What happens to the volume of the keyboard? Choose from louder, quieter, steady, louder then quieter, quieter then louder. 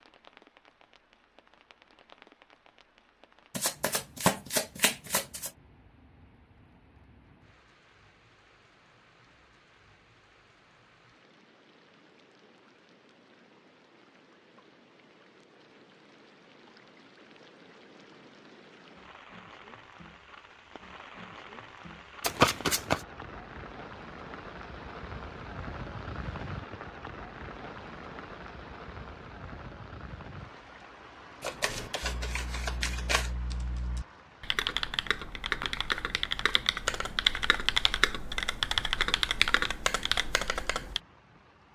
louder.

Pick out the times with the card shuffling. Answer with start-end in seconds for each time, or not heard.
3.5-5.5, 22.2-23.0, 31.4-33.3.